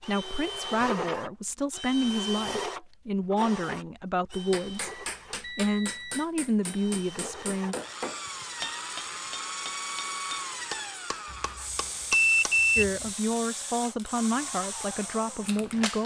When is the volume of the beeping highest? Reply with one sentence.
The loudest moment of the beeping is at 12 seconds.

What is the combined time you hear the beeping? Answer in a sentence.
The beeping can be heard for 3 seconds in total.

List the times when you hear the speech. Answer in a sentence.
The speech can be heard from 0.1 to 7.8 s and from 12.8 to 16.0 s.